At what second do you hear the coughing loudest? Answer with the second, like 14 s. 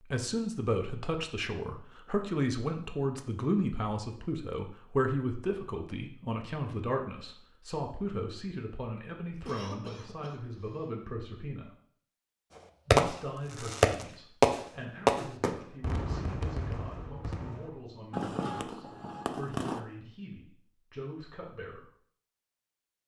10 s.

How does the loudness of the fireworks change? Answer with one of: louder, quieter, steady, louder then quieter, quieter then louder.
quieter.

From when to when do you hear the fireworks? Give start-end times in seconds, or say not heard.
12.9-19.8.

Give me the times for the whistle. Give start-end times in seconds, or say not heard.
not heard.